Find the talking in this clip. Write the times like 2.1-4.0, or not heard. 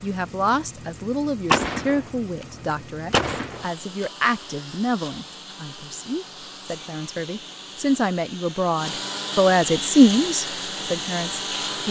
0.0-11.8.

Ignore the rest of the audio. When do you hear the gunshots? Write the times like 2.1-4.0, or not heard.
1.4-2.5, 3.1-4.0.